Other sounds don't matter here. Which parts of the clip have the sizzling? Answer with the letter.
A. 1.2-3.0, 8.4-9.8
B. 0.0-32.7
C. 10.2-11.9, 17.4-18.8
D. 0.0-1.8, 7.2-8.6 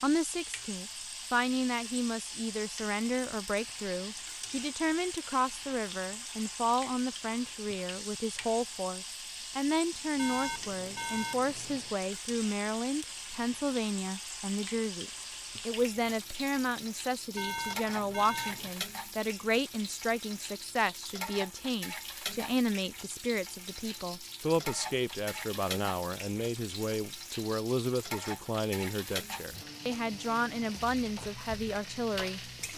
B.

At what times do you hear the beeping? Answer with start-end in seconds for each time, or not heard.
10.2-11.9, 17.4-18.8.